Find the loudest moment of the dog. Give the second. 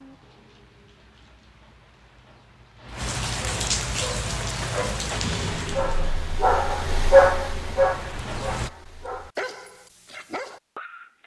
7 s.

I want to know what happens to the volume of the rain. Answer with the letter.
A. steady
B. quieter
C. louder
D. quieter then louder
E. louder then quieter
E.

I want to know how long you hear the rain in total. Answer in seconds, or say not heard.
9 s.